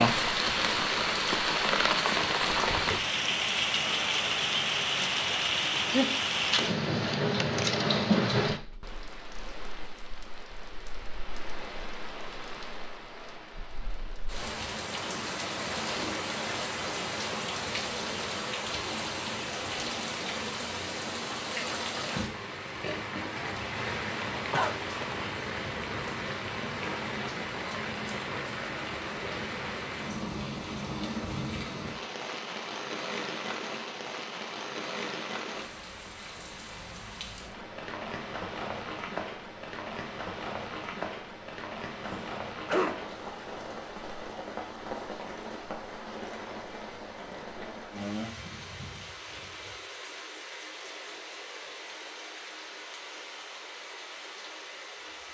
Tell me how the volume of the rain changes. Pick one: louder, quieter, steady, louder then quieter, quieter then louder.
quieter.